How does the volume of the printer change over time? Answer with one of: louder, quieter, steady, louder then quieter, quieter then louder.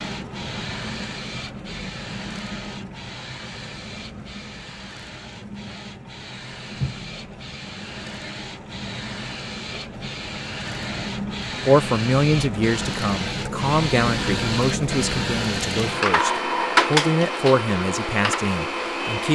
louder.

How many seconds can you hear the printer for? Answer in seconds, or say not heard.
19 s.